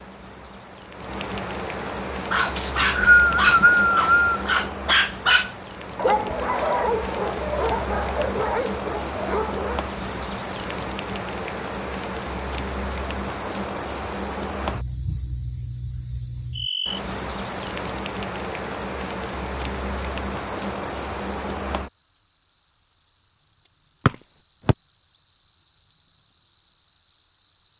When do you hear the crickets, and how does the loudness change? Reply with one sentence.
You can hear the crickets from 0.0 to 27.7 s, at a steady volume.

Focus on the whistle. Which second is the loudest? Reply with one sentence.
The volume of the whistle peaks at 3 seconds.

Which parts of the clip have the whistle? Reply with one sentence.
The whistle can be heard from 2.5 to 4.5 s and from 24.1 to 24.8 s.